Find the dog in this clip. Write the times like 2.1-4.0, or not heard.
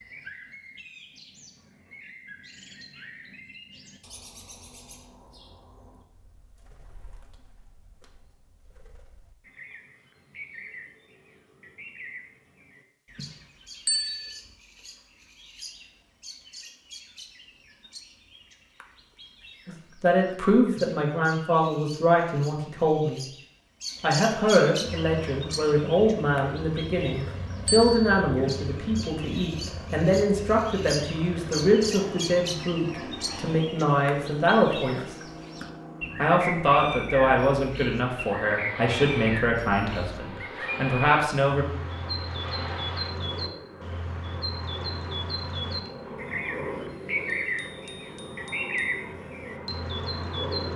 not heard.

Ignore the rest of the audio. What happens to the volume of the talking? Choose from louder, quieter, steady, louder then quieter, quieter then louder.
steady.